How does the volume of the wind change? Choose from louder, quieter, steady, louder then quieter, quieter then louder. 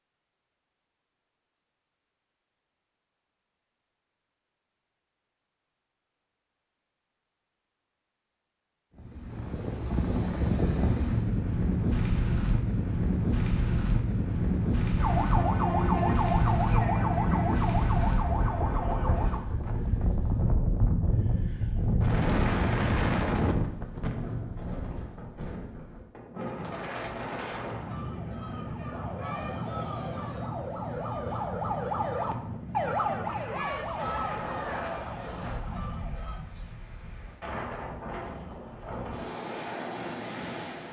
quieter.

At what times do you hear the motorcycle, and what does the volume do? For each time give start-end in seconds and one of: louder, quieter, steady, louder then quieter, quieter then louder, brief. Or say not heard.
not heard.